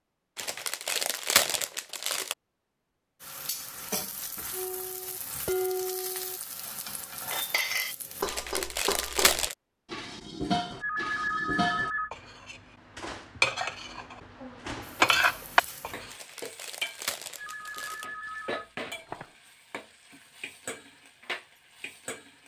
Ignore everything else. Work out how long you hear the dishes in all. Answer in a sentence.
You can hear the dishes for 11 seconds altogether.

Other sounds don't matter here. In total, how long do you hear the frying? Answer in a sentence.
The frying can be heard for 13 seconds in total.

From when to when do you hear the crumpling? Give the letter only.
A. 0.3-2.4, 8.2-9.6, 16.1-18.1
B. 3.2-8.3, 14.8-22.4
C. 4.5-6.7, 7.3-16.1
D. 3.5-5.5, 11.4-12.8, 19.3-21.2
A.